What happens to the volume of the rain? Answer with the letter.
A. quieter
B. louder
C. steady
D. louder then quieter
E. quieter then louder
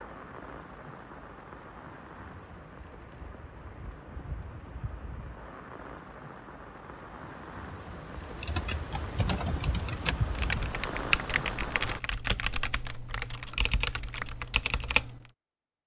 B.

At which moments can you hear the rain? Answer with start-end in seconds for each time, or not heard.
0.0-12.0.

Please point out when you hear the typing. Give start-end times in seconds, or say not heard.
8.4-15.2.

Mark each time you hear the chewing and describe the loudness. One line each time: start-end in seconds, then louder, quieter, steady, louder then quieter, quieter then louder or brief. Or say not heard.
not heard.